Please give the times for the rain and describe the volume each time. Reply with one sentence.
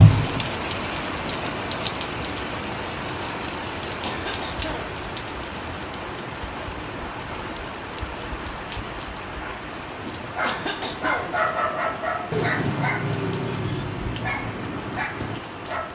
The rain can be heard from 0.0 to 15.9 s, getting quieter.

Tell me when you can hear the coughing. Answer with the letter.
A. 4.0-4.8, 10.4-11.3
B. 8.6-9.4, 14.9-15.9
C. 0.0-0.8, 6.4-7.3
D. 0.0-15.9
A.